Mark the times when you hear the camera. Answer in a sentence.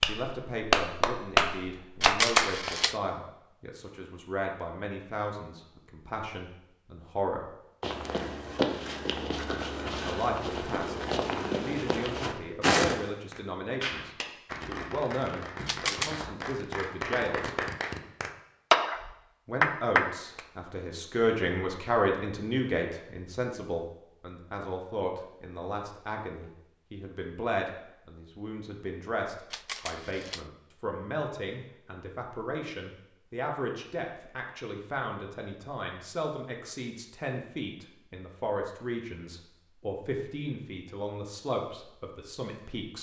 The camera can be heard from 2.0 to 3.0 s, from 15.7 to 16.2 s and from 29.5 to 30.4 s.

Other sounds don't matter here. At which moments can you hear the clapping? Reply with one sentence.
You can hear the clapping from 0.0 to 2.7 s and from 13.3 to 20.4 s.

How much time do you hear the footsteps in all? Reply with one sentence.
You can hear the footsteps for 5 seconds altogether.